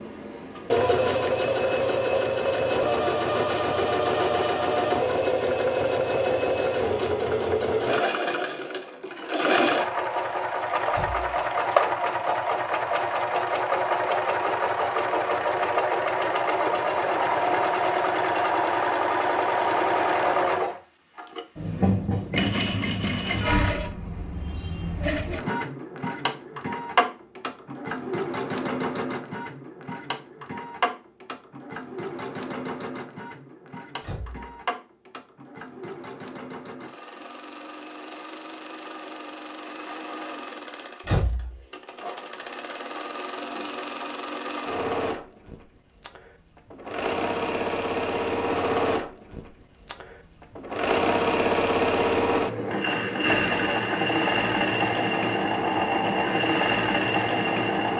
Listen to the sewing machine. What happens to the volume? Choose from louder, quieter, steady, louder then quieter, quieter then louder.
quieter then louder.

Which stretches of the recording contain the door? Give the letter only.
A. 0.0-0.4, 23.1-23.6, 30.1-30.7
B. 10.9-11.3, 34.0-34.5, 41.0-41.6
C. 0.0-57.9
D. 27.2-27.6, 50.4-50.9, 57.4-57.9
B.